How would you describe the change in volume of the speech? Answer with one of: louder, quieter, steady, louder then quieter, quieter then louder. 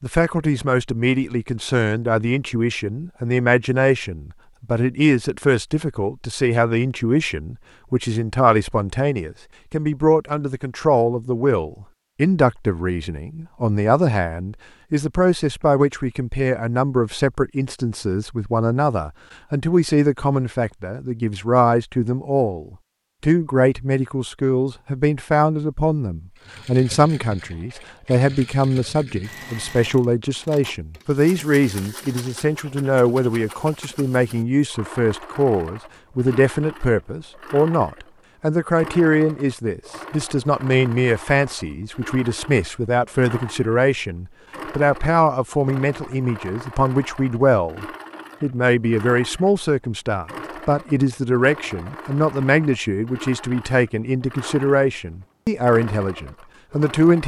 steady.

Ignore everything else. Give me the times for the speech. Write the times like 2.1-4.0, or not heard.
0.0-57.2.